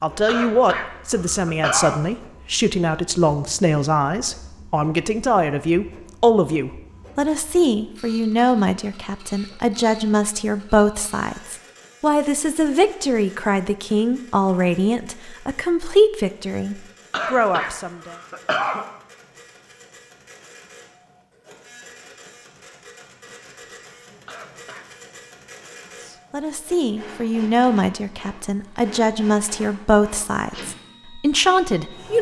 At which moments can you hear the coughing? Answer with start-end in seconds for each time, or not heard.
0.2-2.0, 17.1-18.9, 24.2-24.9.